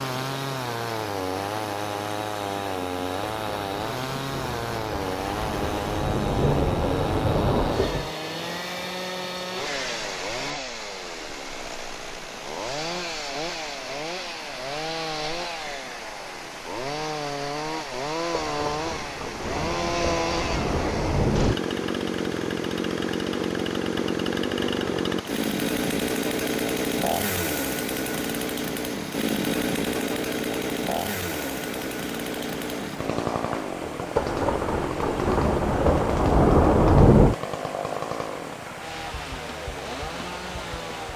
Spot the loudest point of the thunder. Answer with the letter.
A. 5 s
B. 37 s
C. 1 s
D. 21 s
B.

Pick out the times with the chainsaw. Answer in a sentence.
You can hear the chainsaw from 0.0 to 41.1 s.